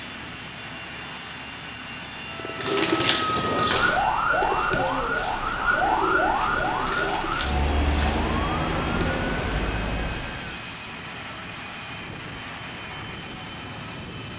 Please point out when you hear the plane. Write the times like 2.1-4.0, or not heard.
0.0-14.3.